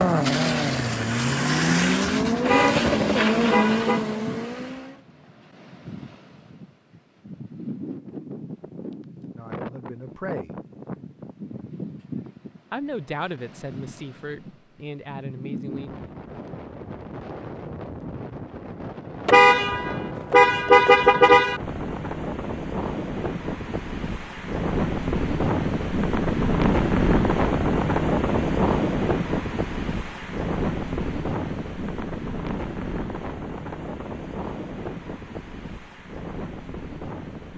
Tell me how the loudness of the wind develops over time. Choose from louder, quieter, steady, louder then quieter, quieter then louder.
louder then quieter.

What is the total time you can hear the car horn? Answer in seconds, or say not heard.
4 s.